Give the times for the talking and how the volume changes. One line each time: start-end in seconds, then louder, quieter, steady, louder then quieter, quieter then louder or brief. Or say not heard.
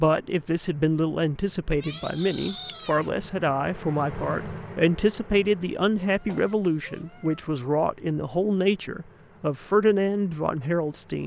0.0-11.2 steady.